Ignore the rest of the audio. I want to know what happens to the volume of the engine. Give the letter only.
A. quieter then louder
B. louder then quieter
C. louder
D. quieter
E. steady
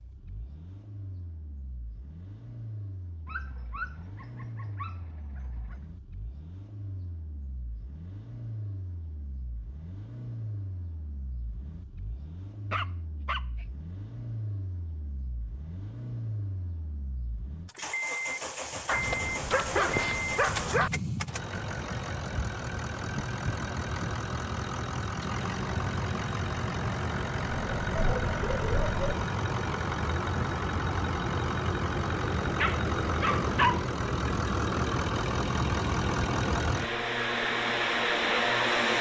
C.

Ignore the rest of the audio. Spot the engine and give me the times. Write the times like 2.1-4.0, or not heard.
0.0-38.9.